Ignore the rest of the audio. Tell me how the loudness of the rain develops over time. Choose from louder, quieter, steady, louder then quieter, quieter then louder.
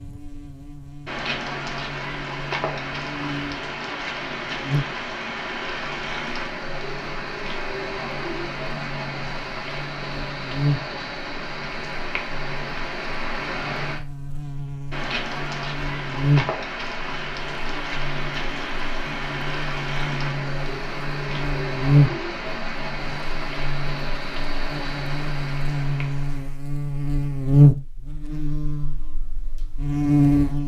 steady.